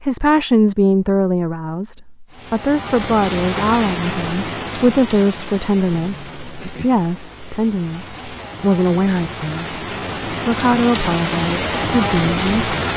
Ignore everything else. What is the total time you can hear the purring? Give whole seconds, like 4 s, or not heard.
not heard.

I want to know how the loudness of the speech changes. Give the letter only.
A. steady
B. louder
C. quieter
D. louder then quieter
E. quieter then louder
A.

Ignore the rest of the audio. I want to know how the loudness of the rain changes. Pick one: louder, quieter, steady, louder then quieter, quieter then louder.
quieter then louder.